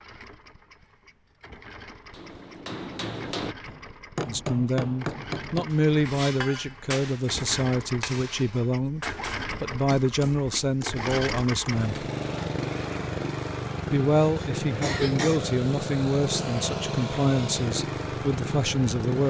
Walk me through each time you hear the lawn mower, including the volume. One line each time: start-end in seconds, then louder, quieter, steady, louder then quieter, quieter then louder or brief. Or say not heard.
0.0-19.2 louder.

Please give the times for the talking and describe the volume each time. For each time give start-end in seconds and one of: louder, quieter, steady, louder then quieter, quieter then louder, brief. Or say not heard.
4.2-12.1 steady
13.8-19.2 steady.